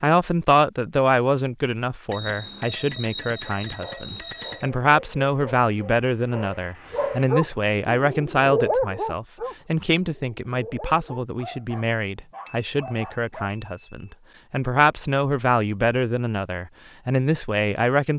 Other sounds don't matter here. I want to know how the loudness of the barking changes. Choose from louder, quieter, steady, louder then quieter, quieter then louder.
louder then quieter.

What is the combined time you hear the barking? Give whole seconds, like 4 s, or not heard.
10 s.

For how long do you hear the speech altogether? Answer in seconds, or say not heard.
18 s.